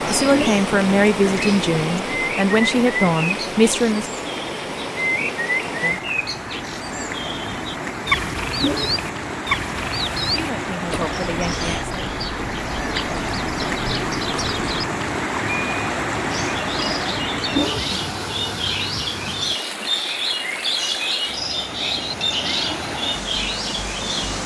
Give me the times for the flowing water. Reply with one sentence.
The flowing water can be heard from 0.0 to 24.4 s.